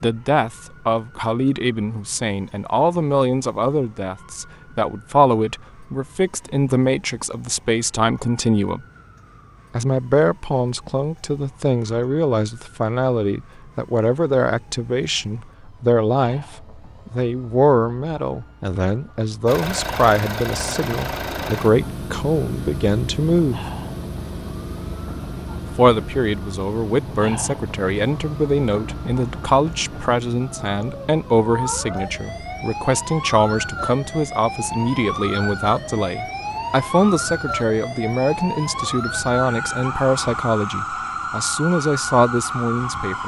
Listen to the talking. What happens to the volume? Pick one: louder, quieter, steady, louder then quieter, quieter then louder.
steady.